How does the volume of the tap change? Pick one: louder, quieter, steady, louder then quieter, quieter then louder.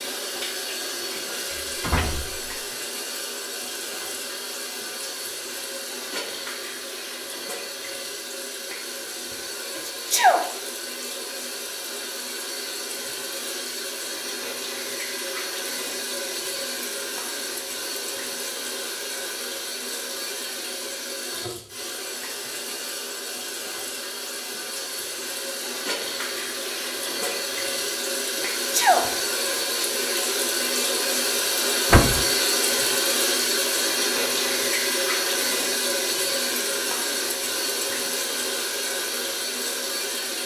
louder.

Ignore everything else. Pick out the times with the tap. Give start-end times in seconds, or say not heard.
0.0-40.4.